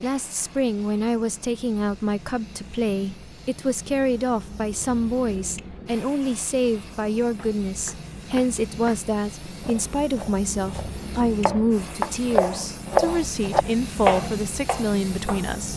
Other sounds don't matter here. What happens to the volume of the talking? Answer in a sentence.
The loudness of the talking stays about the same.